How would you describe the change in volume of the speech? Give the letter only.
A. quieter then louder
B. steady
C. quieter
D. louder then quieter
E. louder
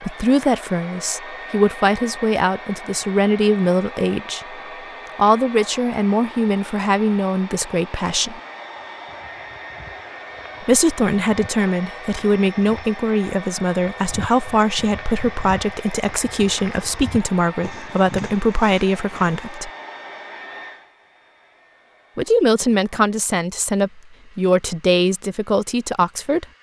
B.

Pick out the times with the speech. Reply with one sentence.
The speech can be heard from 0.0 to 4.5 s, from 5.2 to 8.4 s, from 10.6 to 19.7 s and from 22.1 to 26.4 s.